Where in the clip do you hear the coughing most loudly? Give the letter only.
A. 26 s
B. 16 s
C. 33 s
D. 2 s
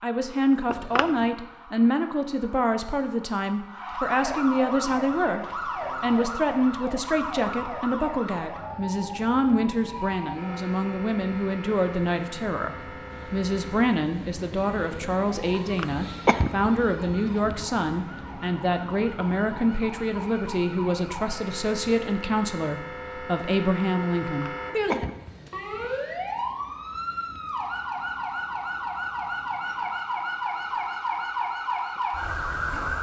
B.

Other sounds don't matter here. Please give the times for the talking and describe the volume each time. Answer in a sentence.
You can hear the talking from 0.0 to 25.1 s, at a steady volume.